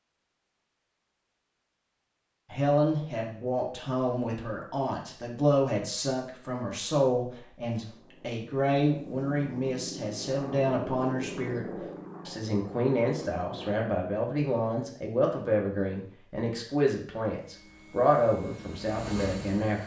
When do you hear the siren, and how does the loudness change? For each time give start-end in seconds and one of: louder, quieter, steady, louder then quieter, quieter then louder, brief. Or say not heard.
not heard.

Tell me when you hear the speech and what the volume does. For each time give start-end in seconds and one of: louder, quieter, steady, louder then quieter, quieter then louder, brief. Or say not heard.
2.5-11.7 steady
12.2-19.8 steady.